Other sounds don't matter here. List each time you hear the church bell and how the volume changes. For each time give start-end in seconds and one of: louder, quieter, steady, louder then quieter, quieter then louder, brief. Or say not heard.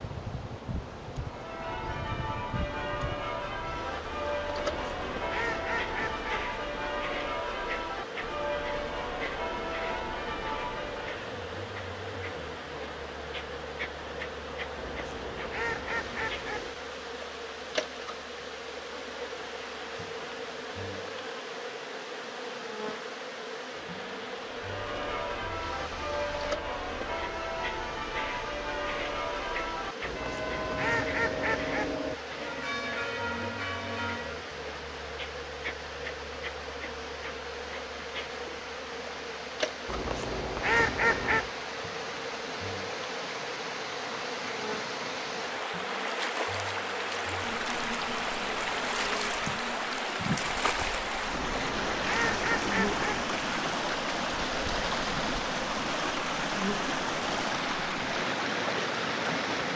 1.2-11.2 steady
24.5-34.5 steady.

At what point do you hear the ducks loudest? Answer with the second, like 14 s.
41 s.